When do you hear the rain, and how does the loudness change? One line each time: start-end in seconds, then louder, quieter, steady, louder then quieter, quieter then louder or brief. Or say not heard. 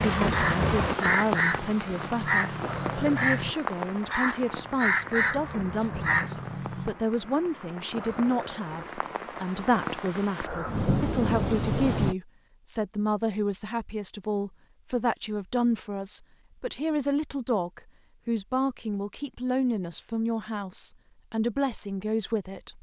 0.0-12.2 quieter then louder.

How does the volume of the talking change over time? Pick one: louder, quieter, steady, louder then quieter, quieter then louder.
steady.